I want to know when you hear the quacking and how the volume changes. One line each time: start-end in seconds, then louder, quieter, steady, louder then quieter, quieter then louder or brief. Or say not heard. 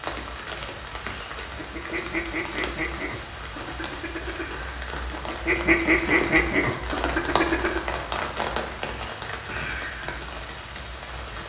1.6-7.8 quieter then louder.